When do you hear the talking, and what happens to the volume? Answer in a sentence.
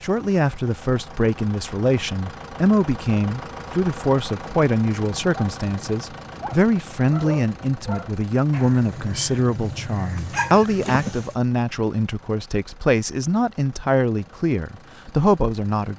You can hear the talking from 0.0 to 15.9 s, at a steady volume.